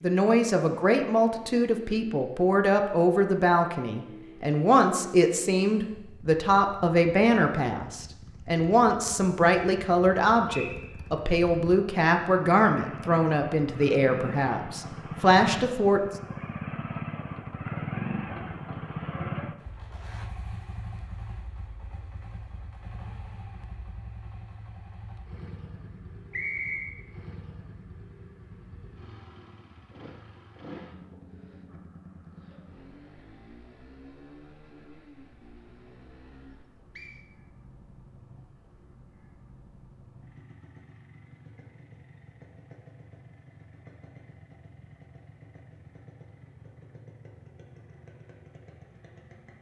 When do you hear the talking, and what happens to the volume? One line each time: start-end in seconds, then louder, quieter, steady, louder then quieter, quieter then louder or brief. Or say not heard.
0.0-16.1 steady.